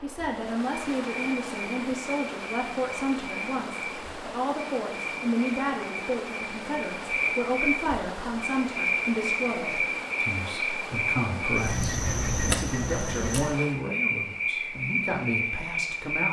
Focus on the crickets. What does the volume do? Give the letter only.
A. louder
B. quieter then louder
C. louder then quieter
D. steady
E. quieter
A.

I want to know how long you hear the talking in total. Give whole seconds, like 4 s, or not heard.
16 s.